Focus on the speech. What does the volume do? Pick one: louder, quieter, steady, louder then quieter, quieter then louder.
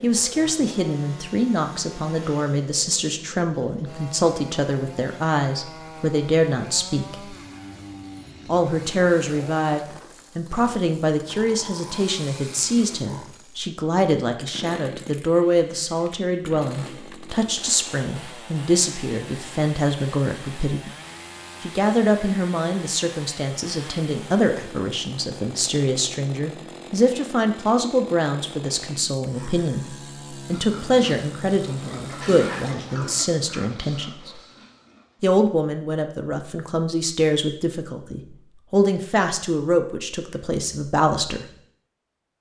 steady.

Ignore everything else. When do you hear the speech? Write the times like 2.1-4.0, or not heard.
0.0-7.3, 8.4-20.9, 21.6-34.4, 35.2-41.5.